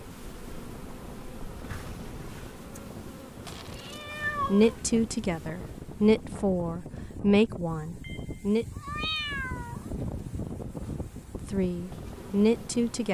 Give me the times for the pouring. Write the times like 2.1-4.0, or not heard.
not heard.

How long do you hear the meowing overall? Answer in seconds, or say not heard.
3 s.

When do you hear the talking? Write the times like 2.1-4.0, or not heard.
4.5-8.7, 11.5-13.0.